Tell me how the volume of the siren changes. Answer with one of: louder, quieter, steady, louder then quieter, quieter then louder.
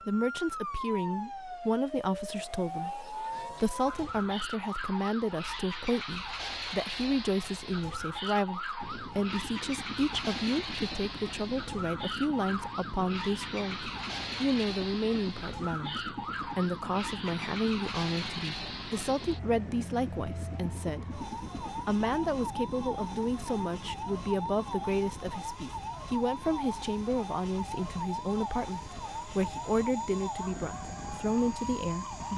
steady.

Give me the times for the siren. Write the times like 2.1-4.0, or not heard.
0.0-32.3.